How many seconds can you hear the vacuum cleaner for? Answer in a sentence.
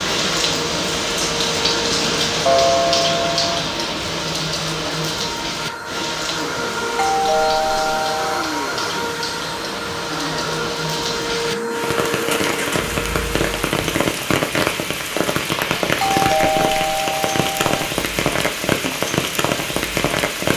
The vacuum cleaner can be heard for 14 seconds in total.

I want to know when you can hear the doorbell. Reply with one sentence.
You can hear the doorbell from 2.5 to 3.6 s, from 7.0 to 8.5 s and from 16.0 to 17.6 s.